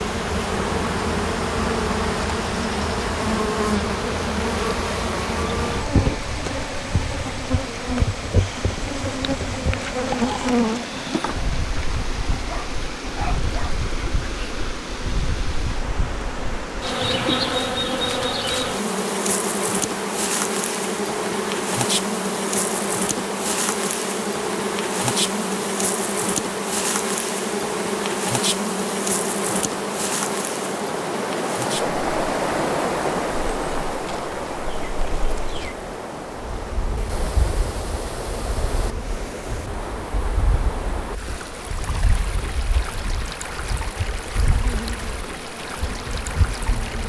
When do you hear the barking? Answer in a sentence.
You can hear the barking from 12.4 to 13.8 s.